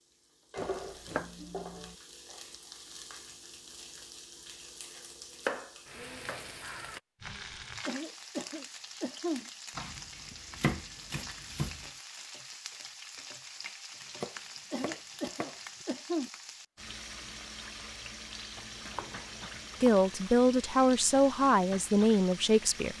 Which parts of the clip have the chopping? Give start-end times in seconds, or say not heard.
0.6-1.9, 5.3-7.0, 9.8-11.8, 14.0-15.8, 18.7-20.1.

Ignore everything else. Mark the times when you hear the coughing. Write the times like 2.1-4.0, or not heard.
7.8-9.5, 14.7-16.3.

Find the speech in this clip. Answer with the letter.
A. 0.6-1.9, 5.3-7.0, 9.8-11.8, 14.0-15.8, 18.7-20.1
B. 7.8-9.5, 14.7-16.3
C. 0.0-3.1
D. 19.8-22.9
D.